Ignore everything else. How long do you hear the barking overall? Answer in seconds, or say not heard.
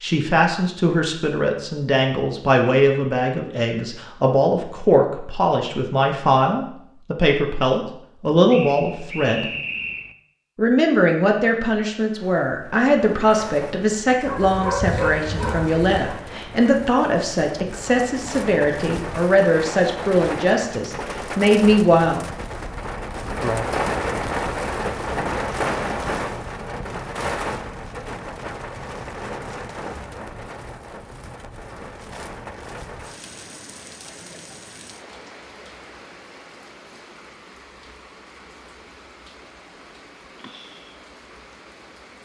2 s.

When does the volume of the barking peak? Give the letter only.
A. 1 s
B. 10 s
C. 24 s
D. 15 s
D.